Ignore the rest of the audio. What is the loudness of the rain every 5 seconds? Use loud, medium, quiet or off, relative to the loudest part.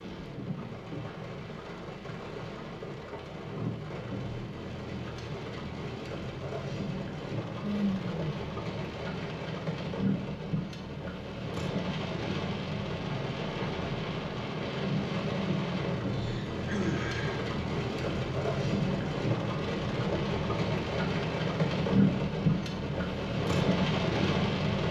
medium, medium, medium, loud, loud.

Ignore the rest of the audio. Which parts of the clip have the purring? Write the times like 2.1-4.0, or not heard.
not heard.